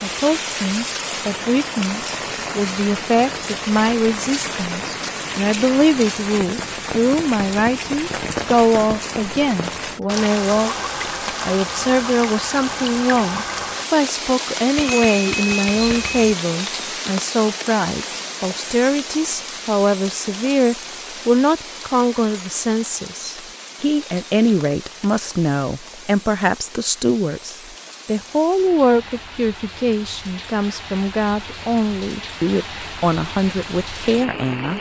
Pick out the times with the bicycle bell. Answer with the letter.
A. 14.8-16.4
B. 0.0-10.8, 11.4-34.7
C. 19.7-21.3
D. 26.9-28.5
A.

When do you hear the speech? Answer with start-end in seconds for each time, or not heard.
0.0-10.8, 11.4-34.7.